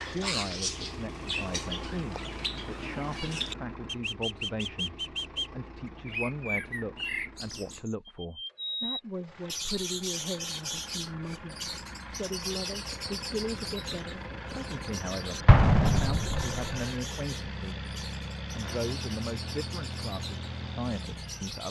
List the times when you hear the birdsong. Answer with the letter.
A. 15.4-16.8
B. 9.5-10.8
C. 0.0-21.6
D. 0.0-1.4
C.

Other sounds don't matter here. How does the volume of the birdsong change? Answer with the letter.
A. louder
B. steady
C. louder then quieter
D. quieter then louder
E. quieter
E.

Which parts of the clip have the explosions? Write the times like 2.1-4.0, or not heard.
15.4-16.8.